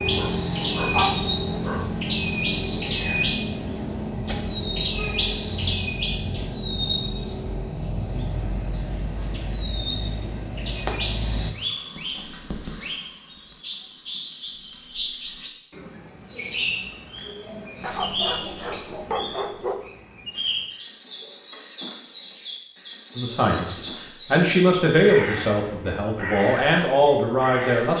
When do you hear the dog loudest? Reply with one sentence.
The loudest moment of the dog is at 1 second.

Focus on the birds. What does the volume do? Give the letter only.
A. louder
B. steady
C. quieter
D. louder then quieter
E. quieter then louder
C.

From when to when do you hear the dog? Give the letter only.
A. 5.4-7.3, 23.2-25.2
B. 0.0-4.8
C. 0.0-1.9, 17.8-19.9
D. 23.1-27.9
C.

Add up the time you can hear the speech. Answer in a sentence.
The speech can be heard for 5 seconds in total.